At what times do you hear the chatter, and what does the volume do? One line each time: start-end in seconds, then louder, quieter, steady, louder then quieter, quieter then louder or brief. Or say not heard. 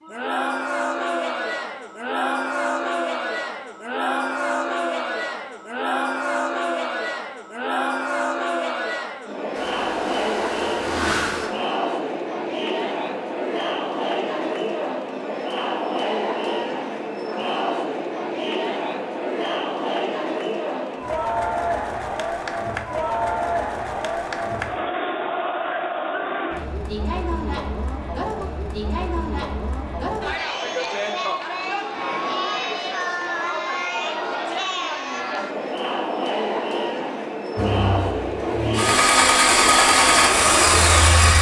0.0-41.3 steady.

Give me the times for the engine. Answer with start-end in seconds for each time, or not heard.
9.5-11.5, 37.5-41.3.